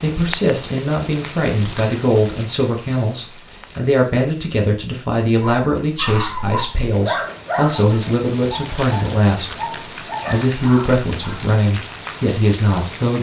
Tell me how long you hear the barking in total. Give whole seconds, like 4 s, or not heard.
6 s.